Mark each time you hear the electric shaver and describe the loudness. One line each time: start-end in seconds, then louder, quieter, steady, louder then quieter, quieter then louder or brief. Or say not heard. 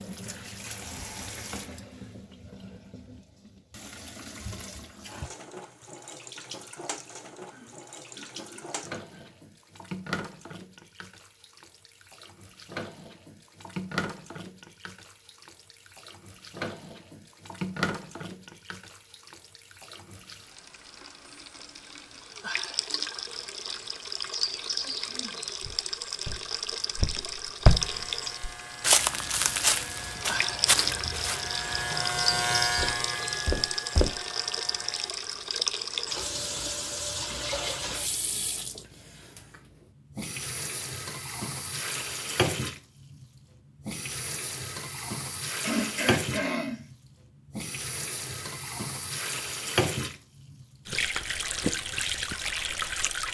27.6-35.1 louder then quieter.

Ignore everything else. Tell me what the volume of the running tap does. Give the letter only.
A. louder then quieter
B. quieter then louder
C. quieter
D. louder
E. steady
D.